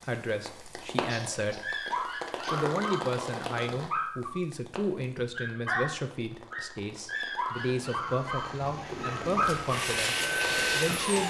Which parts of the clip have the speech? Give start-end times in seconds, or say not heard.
0.0-1.8, 2.5-11.2.